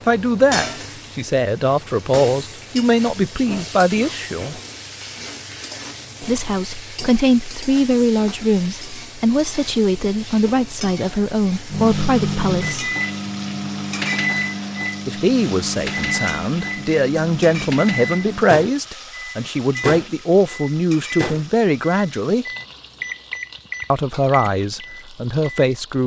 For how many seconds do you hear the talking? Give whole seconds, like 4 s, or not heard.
21 s.